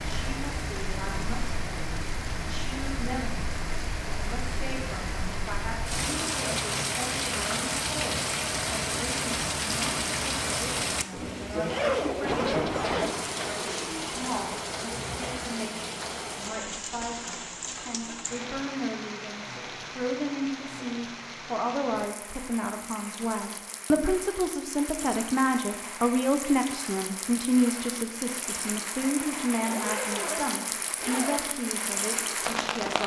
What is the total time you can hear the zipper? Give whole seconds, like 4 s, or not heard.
4 s.